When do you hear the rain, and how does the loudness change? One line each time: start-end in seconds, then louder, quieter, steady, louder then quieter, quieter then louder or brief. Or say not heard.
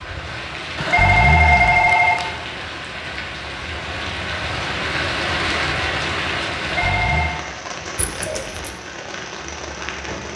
0.0-10.3 louder then quieter.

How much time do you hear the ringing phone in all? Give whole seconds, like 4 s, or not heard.
2 s.